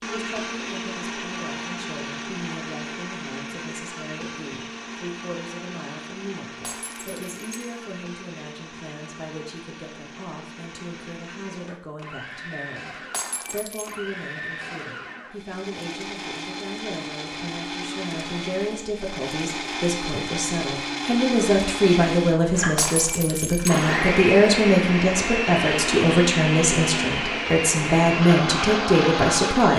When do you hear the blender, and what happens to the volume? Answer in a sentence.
You can hear the blender from 0.0 to 29.7 s, getting quieter then louder.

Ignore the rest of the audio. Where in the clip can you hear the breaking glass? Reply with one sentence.
The breaking glass can be heard from 6.6 to 7.8 s, from 13.1 to 13.9 s and from 22.8 to 23.9 s.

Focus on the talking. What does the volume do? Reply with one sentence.
The loudness of the talking goes up.